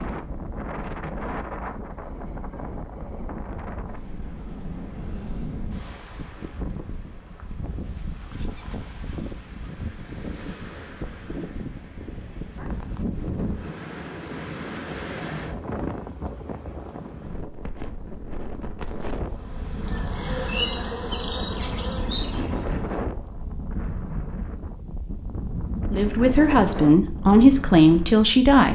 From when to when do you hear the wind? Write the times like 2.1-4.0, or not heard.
0.0-28.6.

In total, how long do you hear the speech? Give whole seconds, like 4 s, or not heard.
3 s.